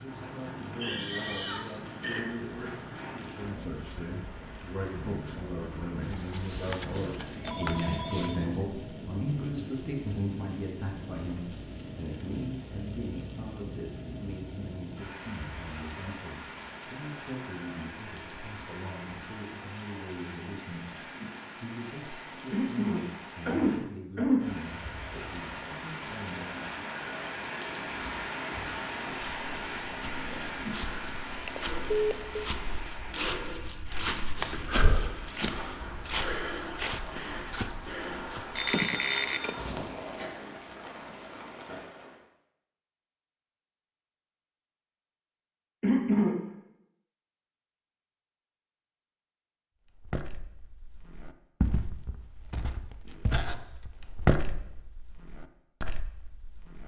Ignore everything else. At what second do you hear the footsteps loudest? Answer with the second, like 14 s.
54 s.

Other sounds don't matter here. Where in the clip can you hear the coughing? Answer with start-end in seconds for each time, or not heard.
0.8-2.2, 22.5-24.4, 45.8-46.4.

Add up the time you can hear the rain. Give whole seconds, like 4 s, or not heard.
42 s.